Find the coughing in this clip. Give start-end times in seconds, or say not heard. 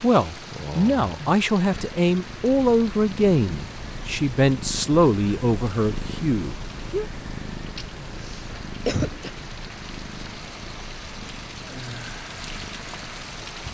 7.8-9.3.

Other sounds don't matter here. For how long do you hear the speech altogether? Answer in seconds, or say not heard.
7 s.